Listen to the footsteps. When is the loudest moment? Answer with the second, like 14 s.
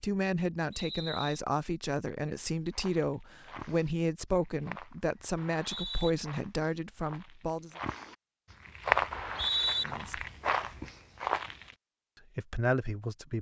9 s.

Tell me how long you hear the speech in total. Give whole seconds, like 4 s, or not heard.
9 s.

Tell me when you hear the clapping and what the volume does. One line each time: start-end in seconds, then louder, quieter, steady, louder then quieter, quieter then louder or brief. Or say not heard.
not heard.